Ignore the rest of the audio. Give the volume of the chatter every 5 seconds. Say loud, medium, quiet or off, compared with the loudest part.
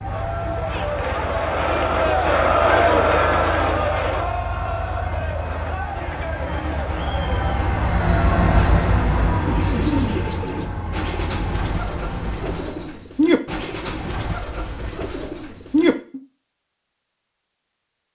loud, medium, off, off.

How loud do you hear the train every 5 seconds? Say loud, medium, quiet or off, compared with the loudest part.
medium, loud, medium, off.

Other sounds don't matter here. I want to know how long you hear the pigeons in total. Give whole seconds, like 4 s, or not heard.
7 s.